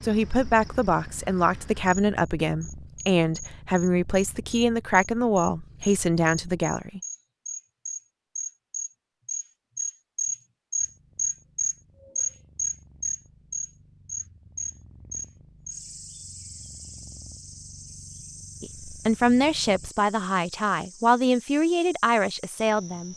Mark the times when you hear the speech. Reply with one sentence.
You can hear the speech from 0.0 to 7.0 s and from 18.6 to 23.1 s.